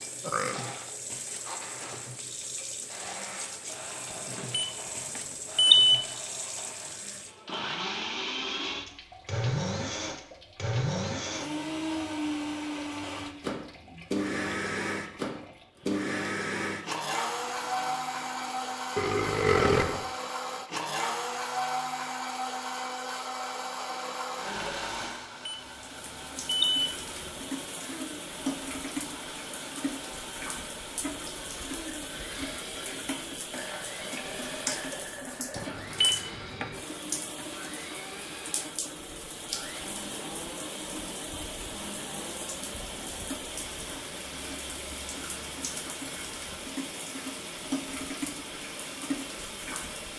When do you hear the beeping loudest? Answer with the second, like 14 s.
6 s.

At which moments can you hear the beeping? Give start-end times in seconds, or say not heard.
4.5-6.0, 25.4-26.9, 35.5-36.8.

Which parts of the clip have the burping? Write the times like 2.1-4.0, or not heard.
0.2-0.8, 18.9-20.1, 33.5-35.8.